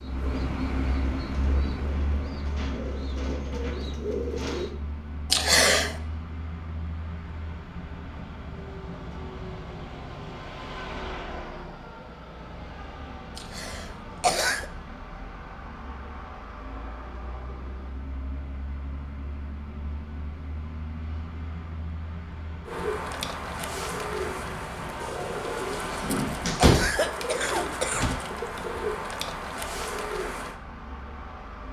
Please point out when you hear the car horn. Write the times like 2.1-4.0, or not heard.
not heard.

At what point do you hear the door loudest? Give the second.
27 s.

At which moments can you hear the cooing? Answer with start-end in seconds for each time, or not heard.
0.0-4.8, 22.6-30.6.